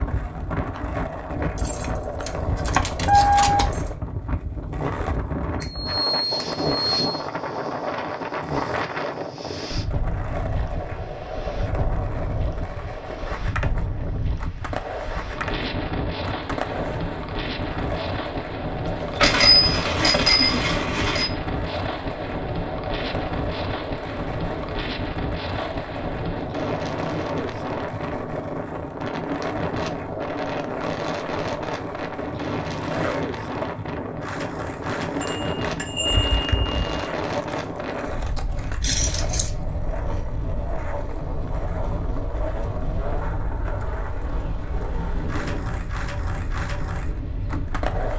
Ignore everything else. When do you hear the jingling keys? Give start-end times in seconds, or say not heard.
1.6-4.0, 18.8-20.4, 38.8-39.5.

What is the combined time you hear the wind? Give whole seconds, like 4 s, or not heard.
48 s.